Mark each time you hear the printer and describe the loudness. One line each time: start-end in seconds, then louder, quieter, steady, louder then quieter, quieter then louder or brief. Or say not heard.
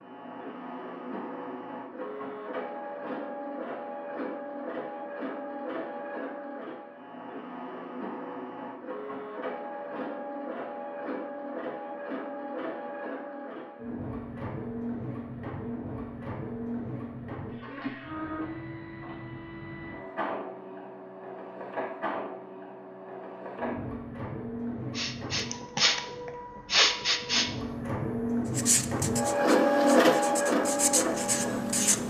0.0-32.0 louder.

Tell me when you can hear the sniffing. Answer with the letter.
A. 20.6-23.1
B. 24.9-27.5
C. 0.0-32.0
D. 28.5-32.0
B.